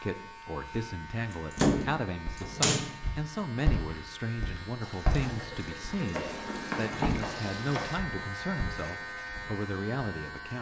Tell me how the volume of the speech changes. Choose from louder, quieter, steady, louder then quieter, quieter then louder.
steady.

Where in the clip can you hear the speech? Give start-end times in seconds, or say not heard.
0.0-10.5.